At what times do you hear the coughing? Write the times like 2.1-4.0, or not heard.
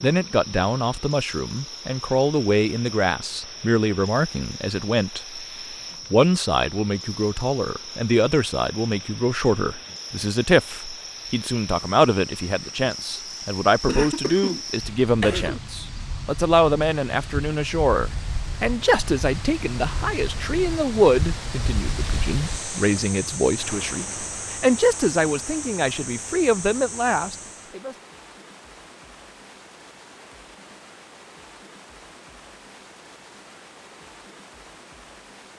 13.8-15.6.